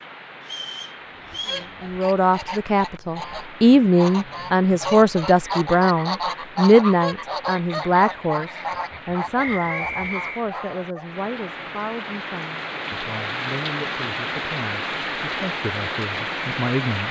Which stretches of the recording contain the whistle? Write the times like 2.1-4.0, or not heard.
0.4-1.7, 9.3-10.4.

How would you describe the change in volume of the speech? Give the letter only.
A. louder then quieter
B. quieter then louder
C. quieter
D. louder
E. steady
C.